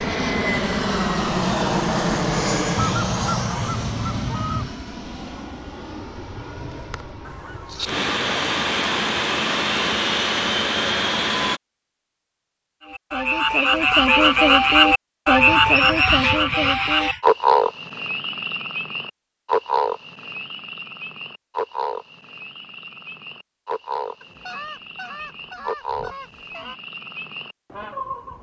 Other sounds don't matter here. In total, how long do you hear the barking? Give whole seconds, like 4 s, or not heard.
not heard.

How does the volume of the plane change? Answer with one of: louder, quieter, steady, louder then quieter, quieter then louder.
quieter then louder.